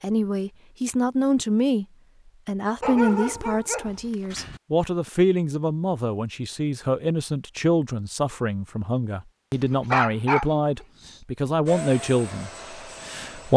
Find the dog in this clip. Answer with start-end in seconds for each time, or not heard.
2.8-4.6, 9.6-11.2.